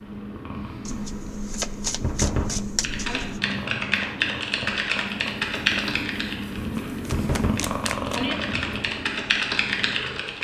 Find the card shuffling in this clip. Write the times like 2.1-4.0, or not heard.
0.8-3.4, 6.8-8.2.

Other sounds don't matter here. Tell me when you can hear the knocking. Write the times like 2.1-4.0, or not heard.
2.0-3.2, 7.0-8.3.